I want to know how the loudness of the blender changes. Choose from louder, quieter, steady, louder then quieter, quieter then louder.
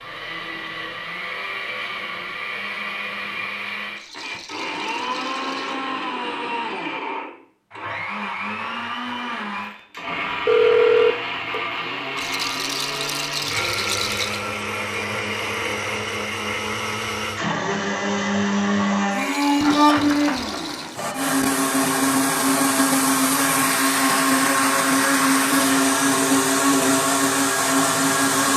louder.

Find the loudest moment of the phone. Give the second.
11 s.